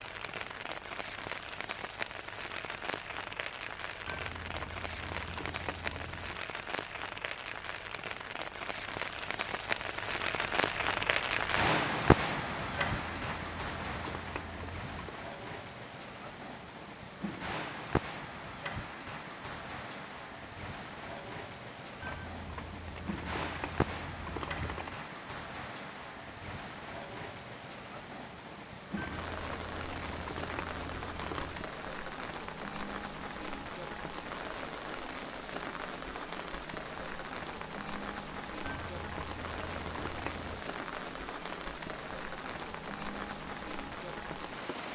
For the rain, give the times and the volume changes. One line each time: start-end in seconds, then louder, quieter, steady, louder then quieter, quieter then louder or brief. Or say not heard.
0.0-44.8 louder then quieter.